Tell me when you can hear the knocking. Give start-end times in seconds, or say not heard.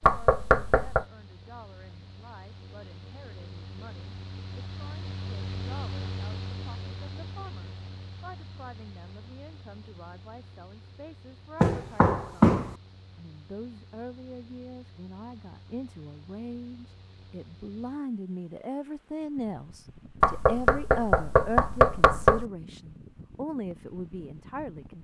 0.0-1.1, 11.6-12.8, 20.2-22.4.